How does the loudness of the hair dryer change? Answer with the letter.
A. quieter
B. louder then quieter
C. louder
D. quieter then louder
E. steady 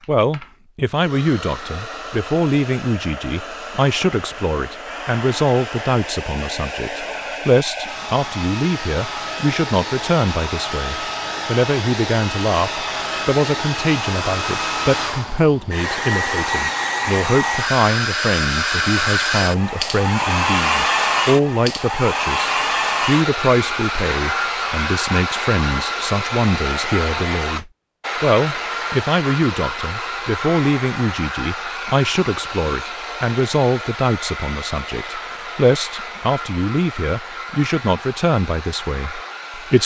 B.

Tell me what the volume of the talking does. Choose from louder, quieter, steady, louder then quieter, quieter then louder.
steady.